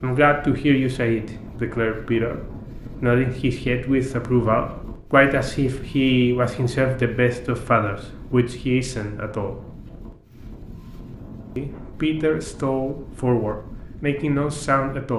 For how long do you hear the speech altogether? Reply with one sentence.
You can hear the speech for 13 seconds altogether.